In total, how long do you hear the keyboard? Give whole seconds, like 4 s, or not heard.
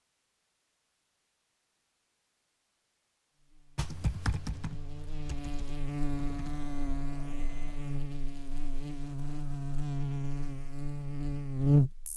3 s.